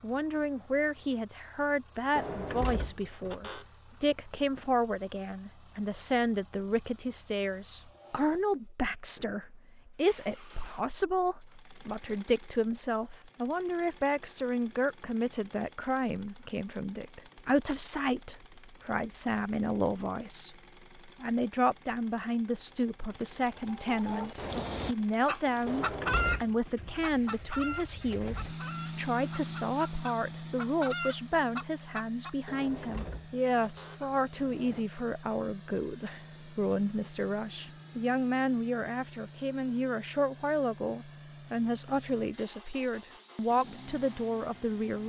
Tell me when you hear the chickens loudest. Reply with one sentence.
The volume of the chickens peaks at 26 seconds.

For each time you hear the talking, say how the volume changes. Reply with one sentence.
The talking can be heard from 0.0 to 45.0 s, at a steady volume.